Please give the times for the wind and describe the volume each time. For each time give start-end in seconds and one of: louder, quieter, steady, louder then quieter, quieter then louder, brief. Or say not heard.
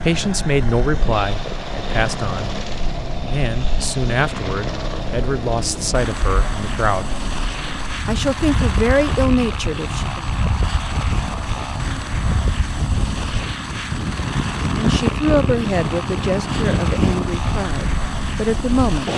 0.0-19.1 louder.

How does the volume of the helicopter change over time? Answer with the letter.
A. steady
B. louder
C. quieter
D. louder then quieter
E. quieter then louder
A.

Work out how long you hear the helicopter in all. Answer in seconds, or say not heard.
19 s.